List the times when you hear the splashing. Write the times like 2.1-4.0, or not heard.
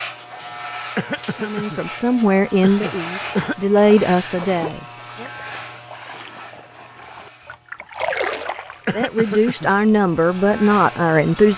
3.0-8.9.